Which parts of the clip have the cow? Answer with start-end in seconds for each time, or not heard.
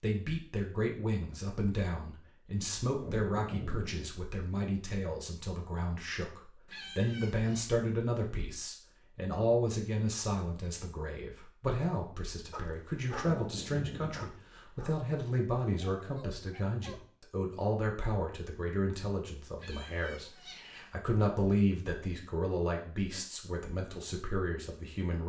not heard.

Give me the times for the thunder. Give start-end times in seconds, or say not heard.
2.9-4.1, 13.2-14.3.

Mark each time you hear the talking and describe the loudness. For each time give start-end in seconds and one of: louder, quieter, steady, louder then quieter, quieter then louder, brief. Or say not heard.
0.0-25.2 steady.